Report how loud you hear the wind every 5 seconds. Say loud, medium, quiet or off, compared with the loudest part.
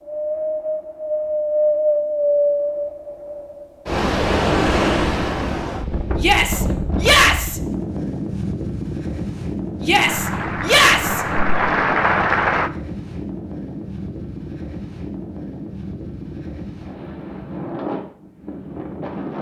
loud, medium, medium, medium.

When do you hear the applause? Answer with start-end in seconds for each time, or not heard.
10.1-12.7.